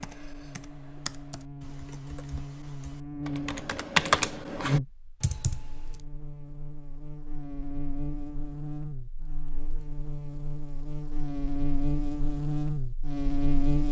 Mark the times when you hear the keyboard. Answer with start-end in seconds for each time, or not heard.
0.0-6.0.